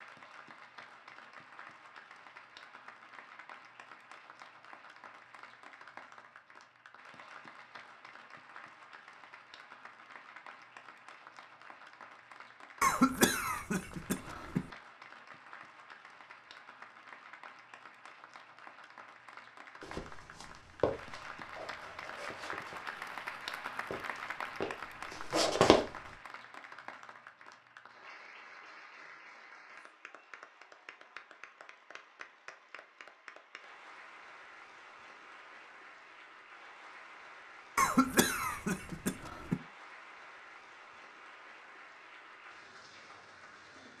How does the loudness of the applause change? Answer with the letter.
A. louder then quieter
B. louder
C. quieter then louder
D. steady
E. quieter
A.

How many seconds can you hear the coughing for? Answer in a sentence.
You can hear the coughing for 4 seconds altogether.